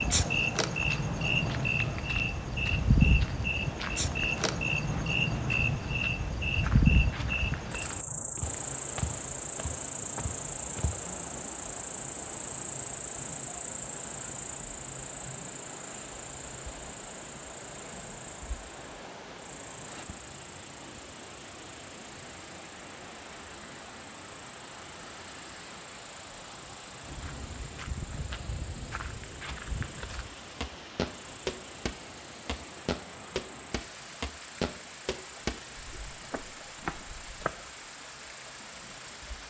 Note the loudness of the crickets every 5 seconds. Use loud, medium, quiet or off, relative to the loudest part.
loud, loud, medium, quiet, quiet, quiet, quiet, quiet.